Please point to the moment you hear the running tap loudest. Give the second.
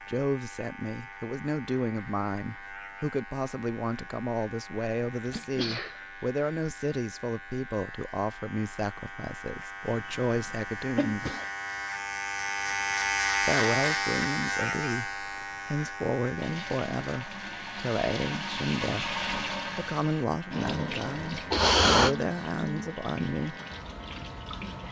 19 s.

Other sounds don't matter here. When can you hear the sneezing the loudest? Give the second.
22 s.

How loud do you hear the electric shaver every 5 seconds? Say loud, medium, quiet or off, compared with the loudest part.
quiet, quiet, loud, medium, quiet.